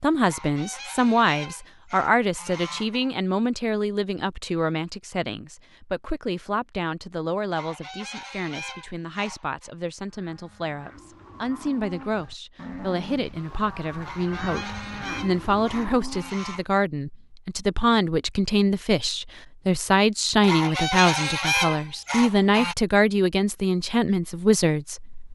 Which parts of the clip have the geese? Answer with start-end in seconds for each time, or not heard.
0.2-3.1, 7.5-9.7, 14.0-16.6, 20.4-22.8.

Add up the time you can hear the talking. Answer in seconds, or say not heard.
25 s.